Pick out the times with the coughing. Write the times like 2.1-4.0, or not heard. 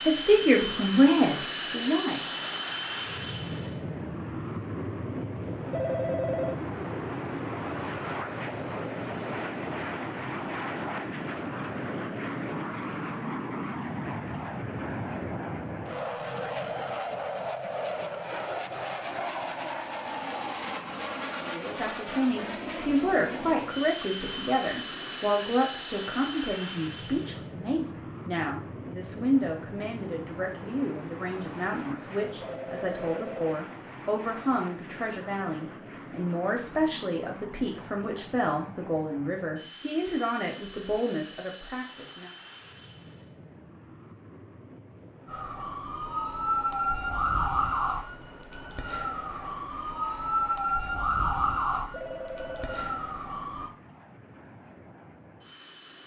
not heard.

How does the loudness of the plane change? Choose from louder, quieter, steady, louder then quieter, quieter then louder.
quieter.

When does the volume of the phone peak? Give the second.
6 s.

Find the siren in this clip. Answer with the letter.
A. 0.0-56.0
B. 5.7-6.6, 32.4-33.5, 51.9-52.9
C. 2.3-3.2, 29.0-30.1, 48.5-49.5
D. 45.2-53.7
D.